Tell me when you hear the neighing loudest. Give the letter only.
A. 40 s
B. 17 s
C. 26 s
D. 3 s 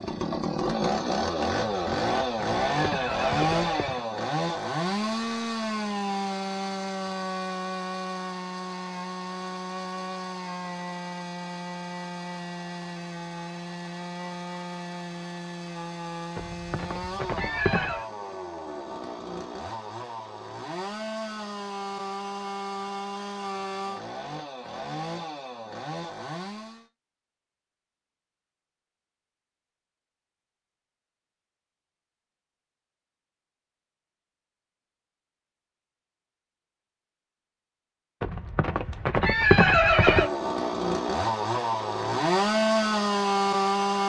A.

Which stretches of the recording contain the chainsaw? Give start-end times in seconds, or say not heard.
0.0-26.9, 40.0-44.0.